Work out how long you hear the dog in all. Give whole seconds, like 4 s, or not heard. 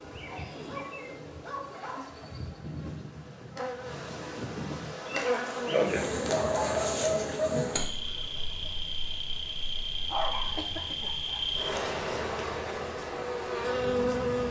5 s.